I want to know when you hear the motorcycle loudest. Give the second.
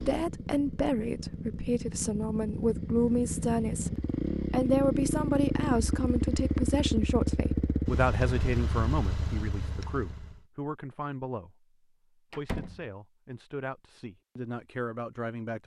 5 s.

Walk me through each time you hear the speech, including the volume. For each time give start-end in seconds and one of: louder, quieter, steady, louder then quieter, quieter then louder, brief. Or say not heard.
0.0-15.6 quieter.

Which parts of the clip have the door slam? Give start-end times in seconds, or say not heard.
12.3-12.8.